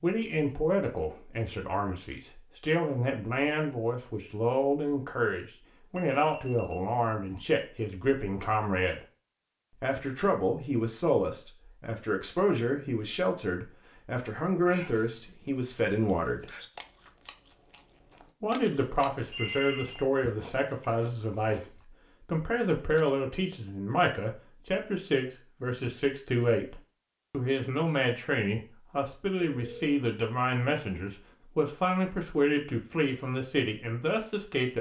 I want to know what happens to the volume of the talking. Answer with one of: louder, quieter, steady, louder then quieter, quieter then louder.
steady.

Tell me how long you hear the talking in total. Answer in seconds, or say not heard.
31 s.